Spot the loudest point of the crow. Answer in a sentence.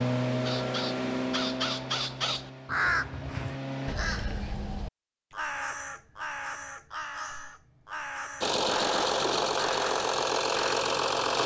The volume of the crow peaks at 3 seconds.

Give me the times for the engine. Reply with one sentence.
The engine can be heard from 0.0 to 4.0 s and from 8.4 to 11.4 s.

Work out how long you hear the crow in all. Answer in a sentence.
You can hear the crow for 10 seconds altogether.